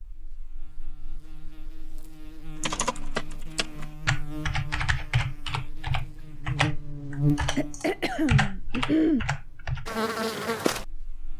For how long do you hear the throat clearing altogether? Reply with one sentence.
You can hear the throat clearing for 2 seconds altogether.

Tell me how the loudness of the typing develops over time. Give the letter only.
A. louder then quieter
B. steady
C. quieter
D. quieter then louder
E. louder
D.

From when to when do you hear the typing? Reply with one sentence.
You can hear the typing from 2.6 to 9.8 s.